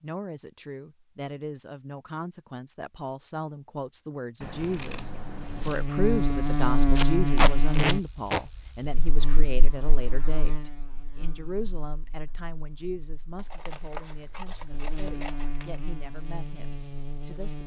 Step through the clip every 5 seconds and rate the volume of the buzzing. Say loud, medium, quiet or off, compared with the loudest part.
off, loud, quiet, medium.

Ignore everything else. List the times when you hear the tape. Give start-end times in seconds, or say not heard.
7.0-8.4.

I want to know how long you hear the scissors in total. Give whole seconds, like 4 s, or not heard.
4 s.